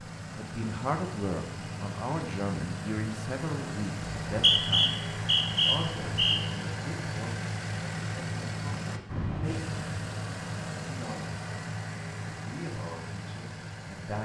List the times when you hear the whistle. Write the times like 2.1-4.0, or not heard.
4.2-6.4.